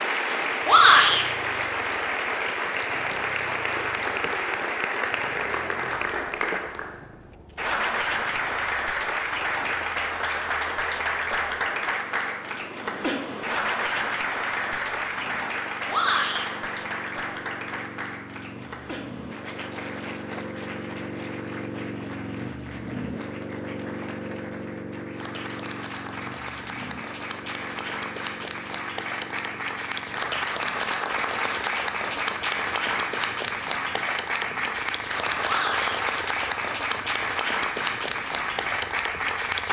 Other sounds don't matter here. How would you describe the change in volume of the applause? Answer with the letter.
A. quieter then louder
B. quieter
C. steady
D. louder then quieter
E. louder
A.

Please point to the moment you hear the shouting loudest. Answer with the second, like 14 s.
1 s.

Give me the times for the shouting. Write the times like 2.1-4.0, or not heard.
0.7-1.2, 15.8-16.4, 35.4-36.0.